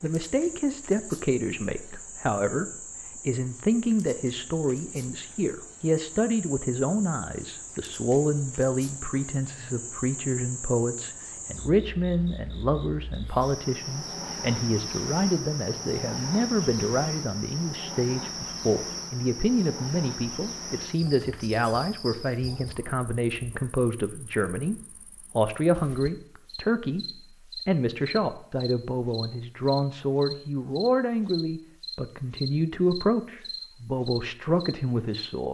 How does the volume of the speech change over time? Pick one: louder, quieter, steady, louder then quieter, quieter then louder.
steady.